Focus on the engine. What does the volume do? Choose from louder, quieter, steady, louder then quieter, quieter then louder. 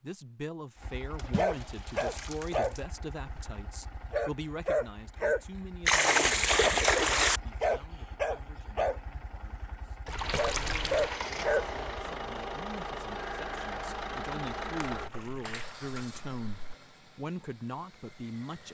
quieter.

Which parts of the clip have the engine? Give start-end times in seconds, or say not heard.
10.2-18.6.